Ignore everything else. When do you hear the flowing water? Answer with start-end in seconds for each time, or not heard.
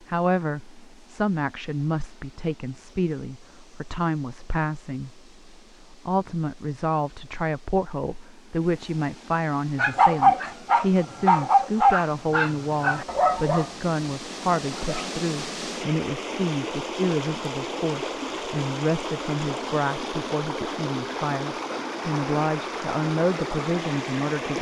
0.0-24.5.